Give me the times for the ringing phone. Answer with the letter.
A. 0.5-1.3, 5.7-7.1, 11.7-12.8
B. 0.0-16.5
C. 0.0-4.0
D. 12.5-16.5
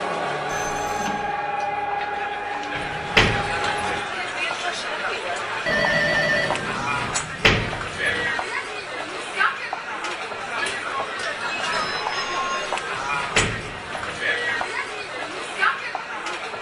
A.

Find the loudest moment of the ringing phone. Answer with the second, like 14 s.
6 s.